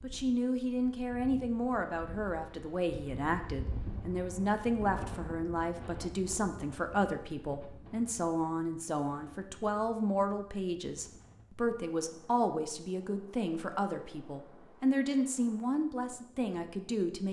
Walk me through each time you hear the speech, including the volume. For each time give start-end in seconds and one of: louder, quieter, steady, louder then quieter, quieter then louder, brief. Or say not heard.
0.0-17.2 steady.